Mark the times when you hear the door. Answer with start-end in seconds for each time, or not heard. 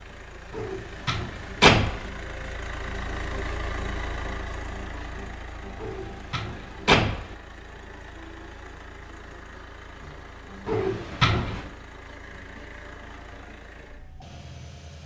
0.6-2.0, 5.8-7.3, 10.7-11.7.